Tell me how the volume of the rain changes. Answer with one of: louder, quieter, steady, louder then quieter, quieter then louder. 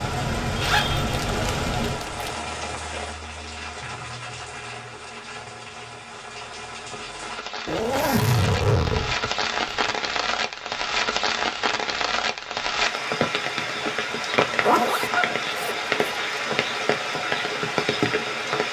quieter then louder.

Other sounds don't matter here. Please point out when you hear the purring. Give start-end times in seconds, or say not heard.
not heard.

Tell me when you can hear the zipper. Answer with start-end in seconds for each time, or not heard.
0.6-2.4, 7.7-9.8, 14.6-16.2.